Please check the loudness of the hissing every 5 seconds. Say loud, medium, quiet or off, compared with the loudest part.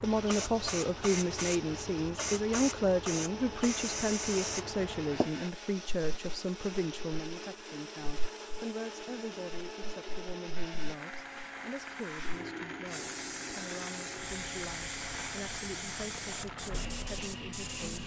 loud, medium, medium, loud.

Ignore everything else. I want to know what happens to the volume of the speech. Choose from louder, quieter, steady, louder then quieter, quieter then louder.
quieter.